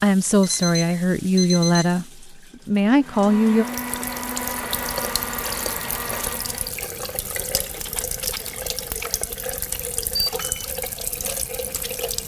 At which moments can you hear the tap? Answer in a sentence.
You can hear the tap from 0.0 to 12.2 s.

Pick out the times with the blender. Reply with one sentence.
The blender can be heard from 3.0 to 6.8 s.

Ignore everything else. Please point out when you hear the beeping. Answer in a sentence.
You can hear the beeping from 0.4 to 1.9 s and from 10.2 to 10.8 s.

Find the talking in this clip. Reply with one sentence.
You can hear the talking from 0.0 to 3.6 s.